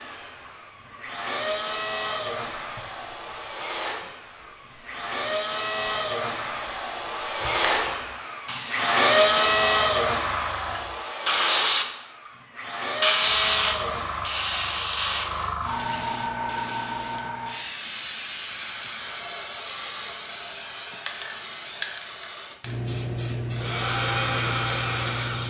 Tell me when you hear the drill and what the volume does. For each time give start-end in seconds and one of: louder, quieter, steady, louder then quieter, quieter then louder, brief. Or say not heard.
0.0-16.2 louder then quieter
23.6-25.4 brief.